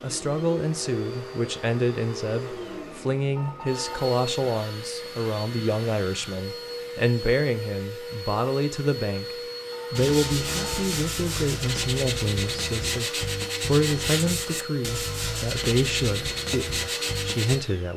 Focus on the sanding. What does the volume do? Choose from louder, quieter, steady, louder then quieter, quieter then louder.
steady.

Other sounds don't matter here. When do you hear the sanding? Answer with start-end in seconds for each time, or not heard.
9.9-17.6.